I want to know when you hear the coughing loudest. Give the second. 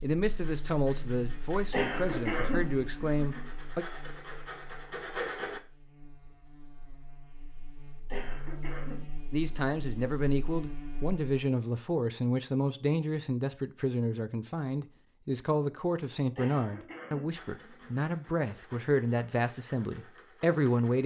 2 s.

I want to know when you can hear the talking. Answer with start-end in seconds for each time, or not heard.
0.0-3.9, 9.3-21.0.